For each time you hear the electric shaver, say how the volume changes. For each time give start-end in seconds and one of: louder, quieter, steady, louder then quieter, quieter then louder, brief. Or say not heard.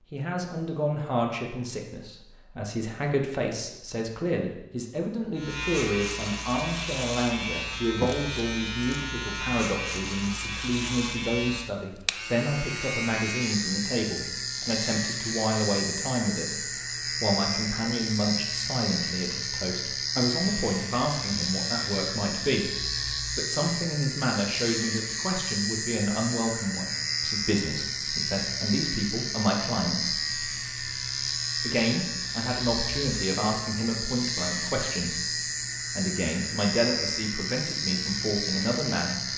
5.3-39.3 steady.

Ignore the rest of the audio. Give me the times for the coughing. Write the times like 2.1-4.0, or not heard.
not heard.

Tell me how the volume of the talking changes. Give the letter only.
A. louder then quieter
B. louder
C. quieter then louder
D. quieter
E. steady
E.